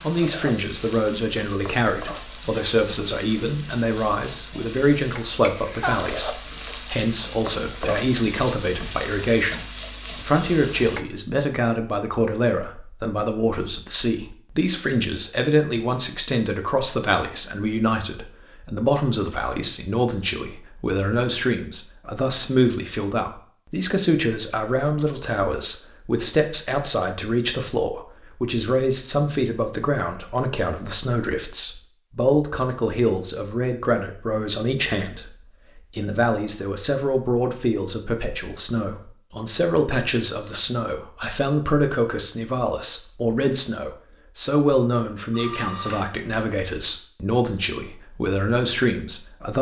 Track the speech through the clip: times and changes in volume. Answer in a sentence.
The speech can be heard from 0.0 to 49.5 s, at a steady volume.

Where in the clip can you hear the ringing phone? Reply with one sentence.
The ringing phone can be heard from 45.3 to 46.5 s.